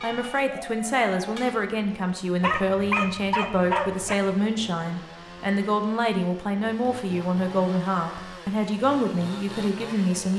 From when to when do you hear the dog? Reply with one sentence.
You can hear the dog from 2.4 to 4.2 s.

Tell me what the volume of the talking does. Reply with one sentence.
The volume of the talking stays about the same.